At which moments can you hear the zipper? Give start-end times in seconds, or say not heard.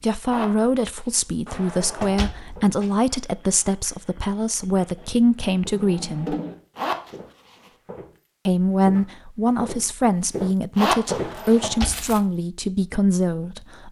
0.2-1.2, 6.8-7.7, 10.8-11.7.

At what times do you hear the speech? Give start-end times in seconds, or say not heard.
0.0-6.3, 8.4-13.8.